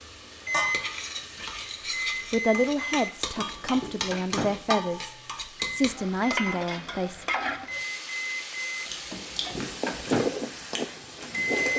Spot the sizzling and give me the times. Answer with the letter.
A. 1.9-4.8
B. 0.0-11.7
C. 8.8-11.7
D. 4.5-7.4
B.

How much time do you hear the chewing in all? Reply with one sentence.
The chewing can be heard for 3 seconds in total.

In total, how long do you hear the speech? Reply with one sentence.
The speech can be heard for 4 seconds in total.